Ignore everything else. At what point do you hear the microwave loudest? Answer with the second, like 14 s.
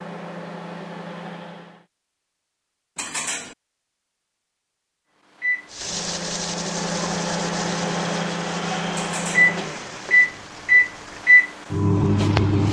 11 s.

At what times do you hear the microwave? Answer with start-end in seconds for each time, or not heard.
0.0-1.8, 5.4-12.6.